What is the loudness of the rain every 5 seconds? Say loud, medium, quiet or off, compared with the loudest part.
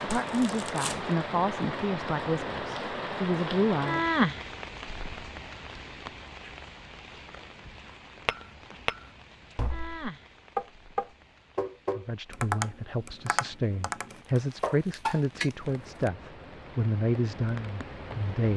loud, quiet, quiet, quiet.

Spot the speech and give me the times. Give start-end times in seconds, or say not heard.
0.0-4.0, 11.9-18.5.